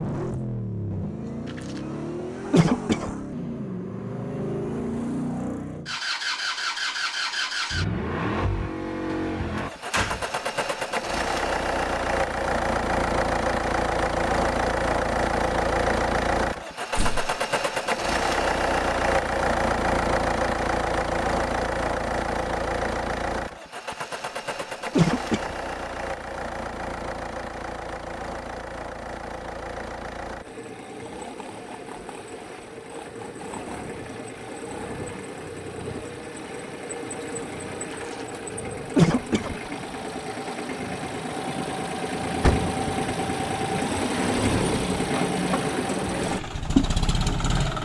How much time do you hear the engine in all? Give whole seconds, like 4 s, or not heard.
48 s.